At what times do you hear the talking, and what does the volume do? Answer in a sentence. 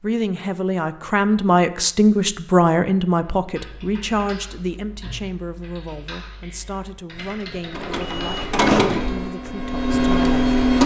The talking can be heard from 0.0 to 10.4 s, getting quieter.